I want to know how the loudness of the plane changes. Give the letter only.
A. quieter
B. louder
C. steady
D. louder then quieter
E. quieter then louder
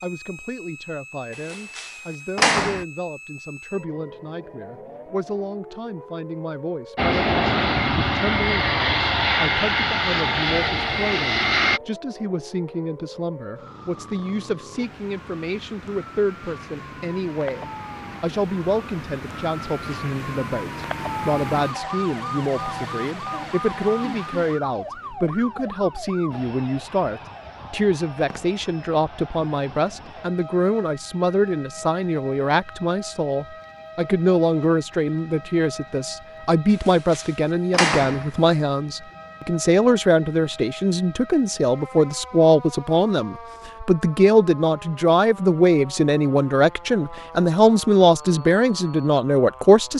C.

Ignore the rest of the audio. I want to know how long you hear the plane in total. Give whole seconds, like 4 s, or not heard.
5 s.